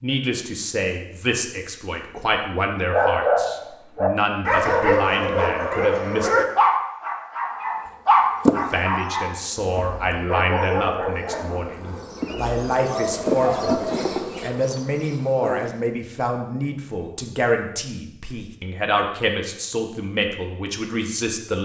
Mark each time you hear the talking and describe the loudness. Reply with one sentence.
You can hear the talking from 0.0 to 6.5 s, at a steady volume; and from 8.5 to 21.5 s, at a steady volume.